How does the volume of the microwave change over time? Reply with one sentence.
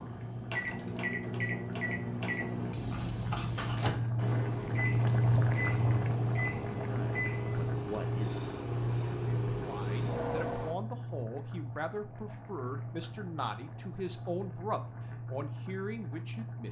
The volume of the microwave stays about the same.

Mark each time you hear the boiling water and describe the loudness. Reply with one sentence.
The boiling water can be heard from 0.0 to 16.6 s, getting louder then quieter.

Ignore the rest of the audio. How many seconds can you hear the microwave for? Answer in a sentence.
The microwave can be heard for 11 seconds in total.